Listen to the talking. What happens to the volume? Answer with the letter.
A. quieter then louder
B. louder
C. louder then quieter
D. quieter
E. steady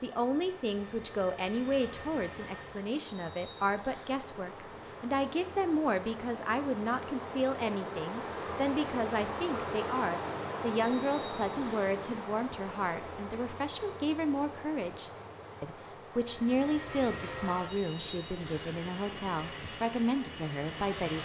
E.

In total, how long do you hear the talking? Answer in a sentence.
You can hear the talking for 21 seconds altogether.